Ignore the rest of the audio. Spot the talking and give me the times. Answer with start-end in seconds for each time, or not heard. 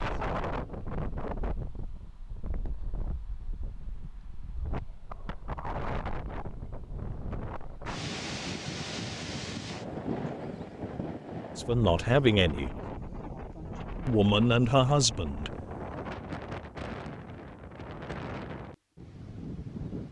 11.6-12.8, 14.1-15.6.